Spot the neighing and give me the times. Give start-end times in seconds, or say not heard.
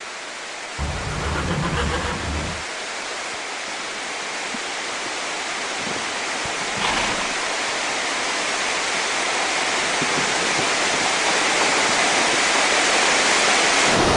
0.8-2.6, 6.5-7.3, 11.4-12.3.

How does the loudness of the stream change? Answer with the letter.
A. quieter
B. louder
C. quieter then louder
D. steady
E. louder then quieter
B.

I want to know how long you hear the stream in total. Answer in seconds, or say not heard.
14 s.